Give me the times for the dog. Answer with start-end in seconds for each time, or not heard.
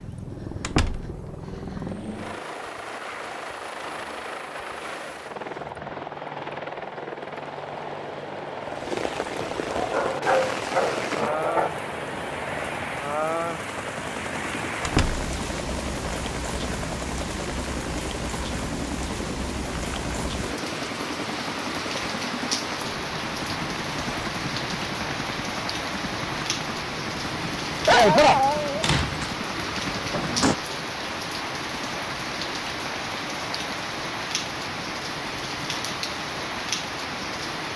9.8-11.7, 27.9-29.4.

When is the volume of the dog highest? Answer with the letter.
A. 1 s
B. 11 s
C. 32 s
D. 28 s
D.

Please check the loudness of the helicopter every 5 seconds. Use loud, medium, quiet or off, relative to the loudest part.
loud, loud, loud, loud, loud, loud, medium, medium.